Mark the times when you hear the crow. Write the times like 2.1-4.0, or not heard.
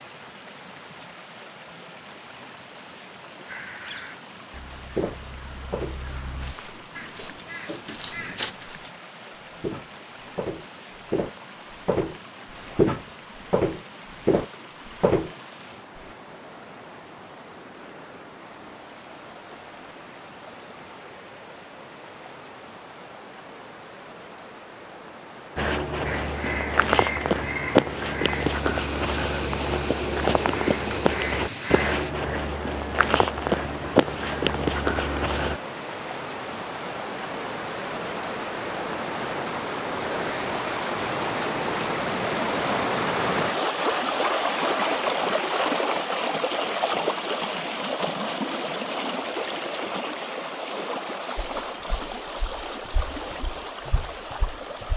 3.5-8.6, 26.0-32.1.